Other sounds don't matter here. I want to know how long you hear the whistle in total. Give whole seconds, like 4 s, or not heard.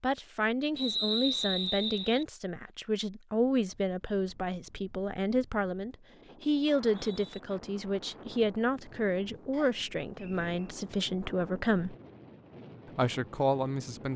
3 s.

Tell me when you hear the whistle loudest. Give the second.
1 s.